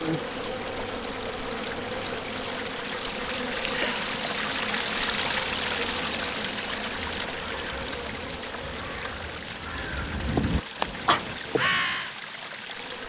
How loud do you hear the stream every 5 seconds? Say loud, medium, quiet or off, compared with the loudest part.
loud, loud, medium.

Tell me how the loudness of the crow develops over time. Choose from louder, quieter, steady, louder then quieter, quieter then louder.
louder.